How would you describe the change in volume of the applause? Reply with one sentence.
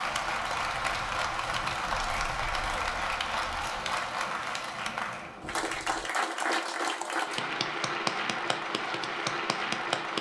The volume of the applause stays about the same.